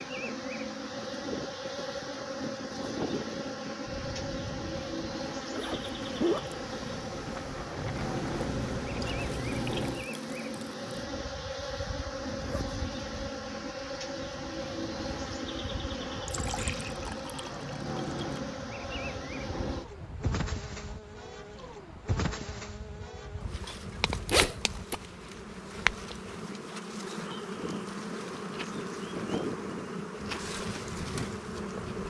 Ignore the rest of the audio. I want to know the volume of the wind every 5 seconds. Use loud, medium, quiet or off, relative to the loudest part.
loud, loud, medium, medium, medium, loud, loud.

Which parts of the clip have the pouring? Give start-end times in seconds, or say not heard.
7.9-10.1, 16.2-18.4.